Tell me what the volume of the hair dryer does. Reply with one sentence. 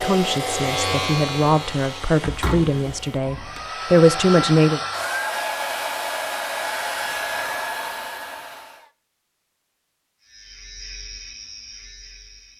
The loudness of the hair dryer goes down, then up.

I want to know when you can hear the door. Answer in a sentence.
You can hear the door from 2.2 to 3.6 s.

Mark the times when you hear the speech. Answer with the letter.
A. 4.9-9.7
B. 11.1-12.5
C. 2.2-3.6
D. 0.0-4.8
D.